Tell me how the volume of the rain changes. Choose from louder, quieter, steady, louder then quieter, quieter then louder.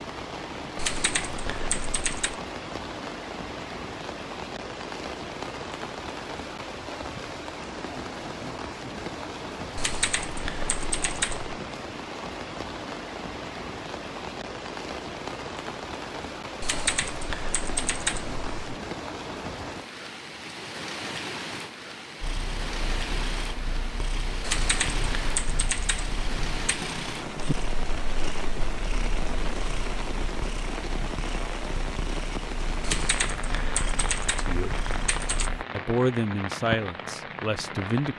steady.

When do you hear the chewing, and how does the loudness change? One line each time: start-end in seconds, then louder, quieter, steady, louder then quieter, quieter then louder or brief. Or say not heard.
not heard.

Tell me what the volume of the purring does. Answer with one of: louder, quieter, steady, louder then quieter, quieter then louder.
steady.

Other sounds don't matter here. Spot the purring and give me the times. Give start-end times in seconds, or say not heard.
22.2-35.6.